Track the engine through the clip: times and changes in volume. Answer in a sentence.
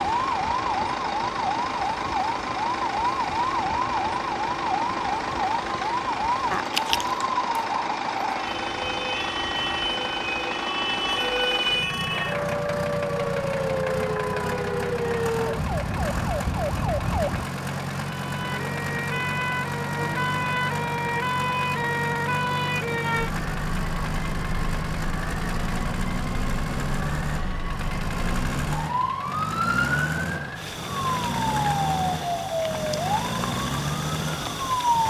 The engine can be heard from 0.0 to 35.0 s, at a steady volume.